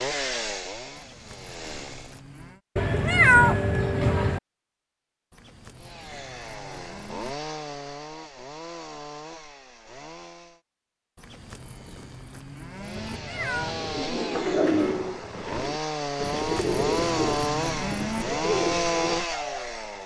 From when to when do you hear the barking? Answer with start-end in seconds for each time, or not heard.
not heard.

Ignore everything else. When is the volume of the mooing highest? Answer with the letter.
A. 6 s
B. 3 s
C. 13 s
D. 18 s
D.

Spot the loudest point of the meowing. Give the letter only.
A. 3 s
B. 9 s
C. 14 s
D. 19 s
A.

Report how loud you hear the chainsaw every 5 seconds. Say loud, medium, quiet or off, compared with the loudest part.
medium, medium, medium, loud.